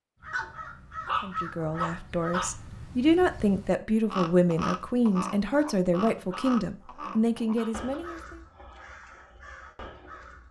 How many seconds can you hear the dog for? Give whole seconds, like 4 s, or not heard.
5 s.